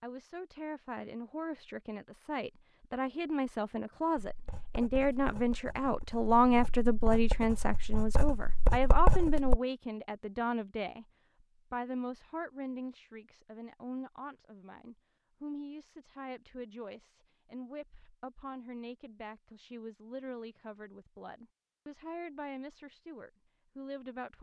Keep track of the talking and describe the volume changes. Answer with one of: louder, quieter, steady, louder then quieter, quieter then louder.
louder then quieter.